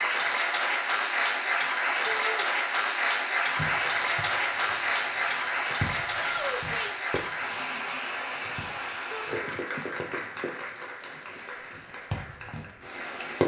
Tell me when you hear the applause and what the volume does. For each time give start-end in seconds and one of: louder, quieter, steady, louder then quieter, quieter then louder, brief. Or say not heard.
0.0-13.4 quieter.